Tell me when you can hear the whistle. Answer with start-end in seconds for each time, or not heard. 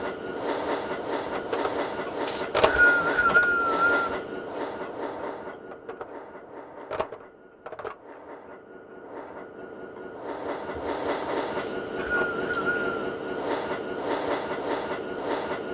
2.2-4.2, 11.6-12.8.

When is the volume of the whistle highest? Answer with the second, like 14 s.
3 s.